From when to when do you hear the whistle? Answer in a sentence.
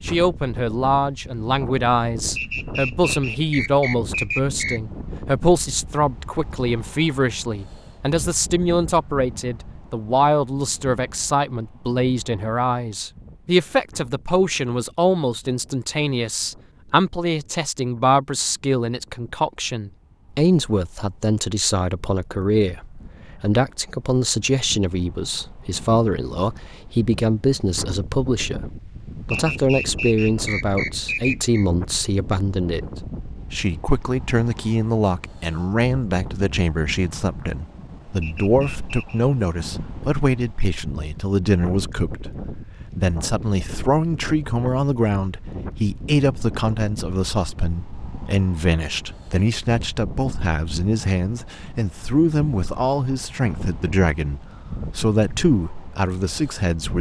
You can hear the whistle from 2.4 to 4.8 s, from 29.3 to 31.6 s and from 38.2 to 39.2 s.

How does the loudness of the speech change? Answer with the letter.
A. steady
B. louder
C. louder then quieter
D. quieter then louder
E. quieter
A.